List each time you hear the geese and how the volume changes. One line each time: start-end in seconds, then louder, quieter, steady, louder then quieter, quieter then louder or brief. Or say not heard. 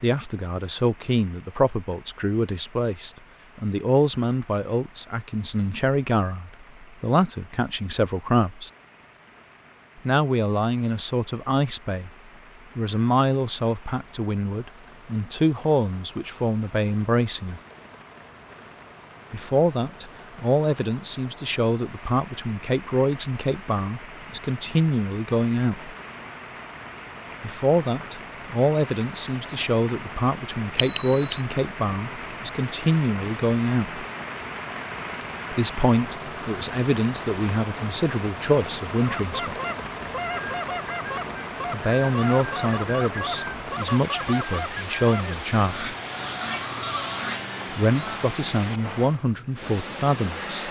39.0-48.4 steady.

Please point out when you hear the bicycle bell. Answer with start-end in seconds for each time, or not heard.
30.8-31.4.